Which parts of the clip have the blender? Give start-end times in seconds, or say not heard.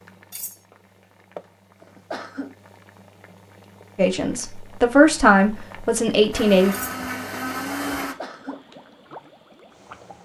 6.3-8.2.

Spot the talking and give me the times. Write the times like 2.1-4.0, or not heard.
4.0-6.8.